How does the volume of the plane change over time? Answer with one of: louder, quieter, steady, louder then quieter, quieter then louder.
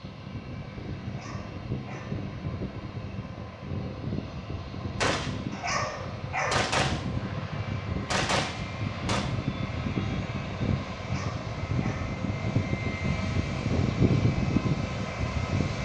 louder.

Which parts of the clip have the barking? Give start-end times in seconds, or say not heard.
1.1-2.1, 5.5-6.6, 11.0-12.1.